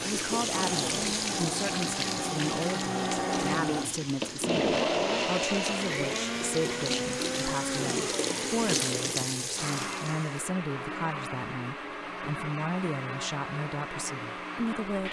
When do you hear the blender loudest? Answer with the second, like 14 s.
5 s.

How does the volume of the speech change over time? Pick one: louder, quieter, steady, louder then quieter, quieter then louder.
steady.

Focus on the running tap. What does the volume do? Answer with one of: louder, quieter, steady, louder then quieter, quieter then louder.
quieter then louder.